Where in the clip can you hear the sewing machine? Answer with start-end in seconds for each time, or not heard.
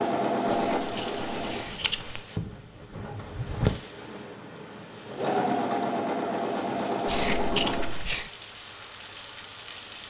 0.0-1.8, 3.0-8.0.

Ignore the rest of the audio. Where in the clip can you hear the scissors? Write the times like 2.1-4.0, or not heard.
0.5-2.2, 7.0-8.3.